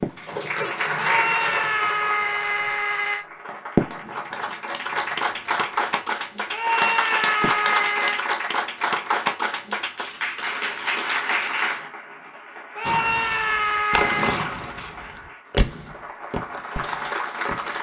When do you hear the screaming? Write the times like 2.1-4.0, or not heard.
0.9-3.2, 6.5-8.2, 12.8-14.3.